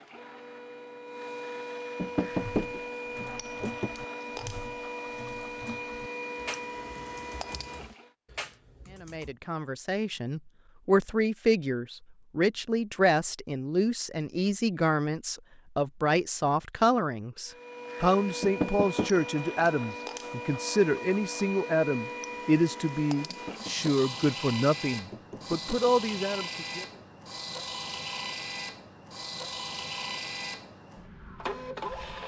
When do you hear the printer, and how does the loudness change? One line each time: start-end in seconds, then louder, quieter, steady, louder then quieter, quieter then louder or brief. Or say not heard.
0.0-8.1 steady
17.4-32.2 steady.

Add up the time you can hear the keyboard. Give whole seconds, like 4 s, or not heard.
7 s.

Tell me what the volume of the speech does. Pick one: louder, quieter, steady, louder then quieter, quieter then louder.
steady.